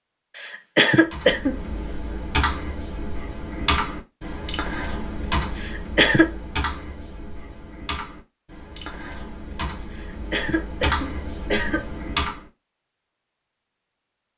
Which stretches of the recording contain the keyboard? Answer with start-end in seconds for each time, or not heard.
1.1-12.4.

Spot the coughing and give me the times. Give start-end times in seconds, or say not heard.
0.3-1.6, 5.5-6.3, 9.9-11.8.